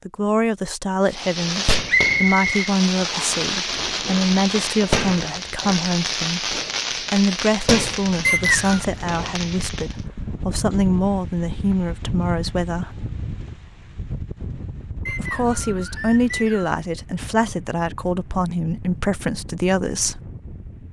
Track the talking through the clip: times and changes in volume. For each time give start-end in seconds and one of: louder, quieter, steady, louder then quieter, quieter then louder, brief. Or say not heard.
0.1-12.9 steady
15.1-20.2 steady.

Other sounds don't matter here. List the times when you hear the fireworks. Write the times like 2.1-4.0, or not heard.
1.1-9.9.